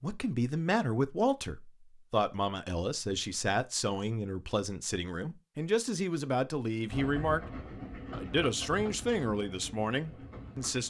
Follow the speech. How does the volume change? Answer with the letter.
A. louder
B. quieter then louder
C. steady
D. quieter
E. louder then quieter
C.